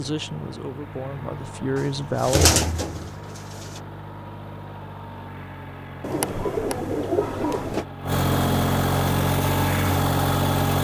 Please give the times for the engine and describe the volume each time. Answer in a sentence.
The engine can be heard from 0.0 to 10.7 s, getting louder.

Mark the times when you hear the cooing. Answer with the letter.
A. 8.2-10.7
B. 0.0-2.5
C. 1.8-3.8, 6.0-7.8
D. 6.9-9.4
C.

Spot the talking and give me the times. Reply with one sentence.
The talking can be heard from 0.0 to 2.5 s.